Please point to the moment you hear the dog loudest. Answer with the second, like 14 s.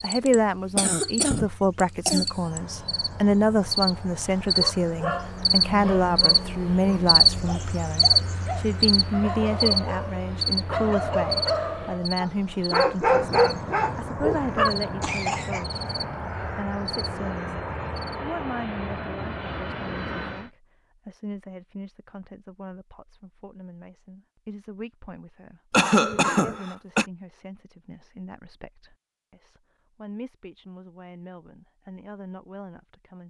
13 s.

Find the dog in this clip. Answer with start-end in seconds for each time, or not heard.
4.5-14.8.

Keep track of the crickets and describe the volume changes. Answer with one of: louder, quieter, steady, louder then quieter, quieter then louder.
louder then quieter.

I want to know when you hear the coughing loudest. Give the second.
26 s.